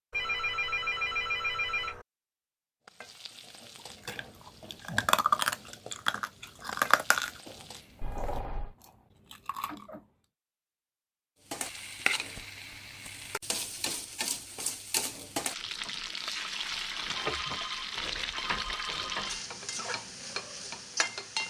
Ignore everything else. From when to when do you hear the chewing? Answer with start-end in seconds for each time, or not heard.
4.0-10.1.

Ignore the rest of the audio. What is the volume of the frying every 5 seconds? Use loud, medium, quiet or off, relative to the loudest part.
quiet, quiet, loud, loud, loud.